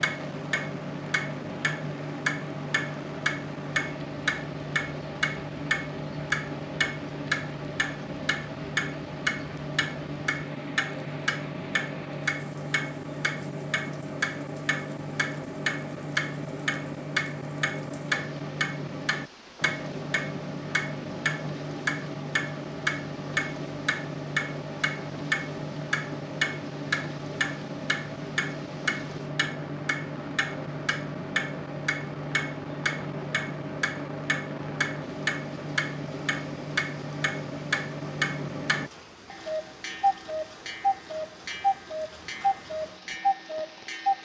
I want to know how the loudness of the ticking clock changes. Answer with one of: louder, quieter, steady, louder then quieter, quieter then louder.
steady.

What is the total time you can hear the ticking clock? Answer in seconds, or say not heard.
44 s.